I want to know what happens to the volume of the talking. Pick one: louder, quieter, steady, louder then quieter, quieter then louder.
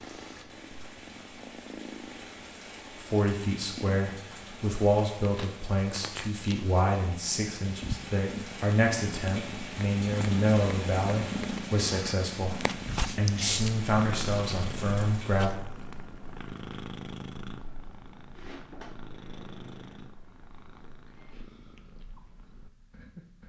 steady.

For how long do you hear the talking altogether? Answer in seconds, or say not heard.
13 s.